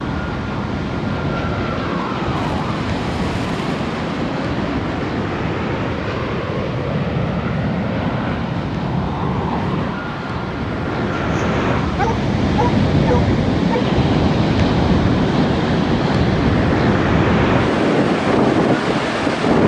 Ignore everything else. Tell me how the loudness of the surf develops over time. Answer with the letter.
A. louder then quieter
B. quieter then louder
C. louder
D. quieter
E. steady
C.